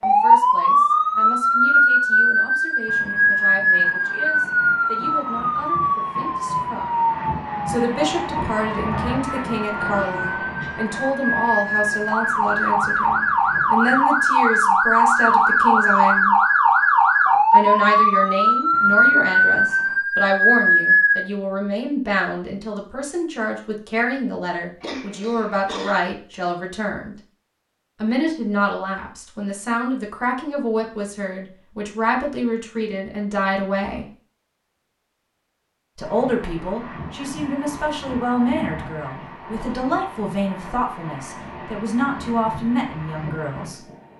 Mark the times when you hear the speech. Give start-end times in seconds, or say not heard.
0.0-7.0, 7.7-16.4, 17.5-27.1, 28.0-34.0, 36.0-43.8.